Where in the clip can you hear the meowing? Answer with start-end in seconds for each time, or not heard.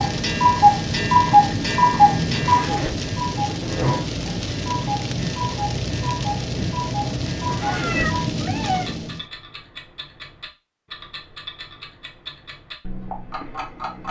7.6-8.9.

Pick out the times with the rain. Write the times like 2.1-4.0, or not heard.
0.0-9.2.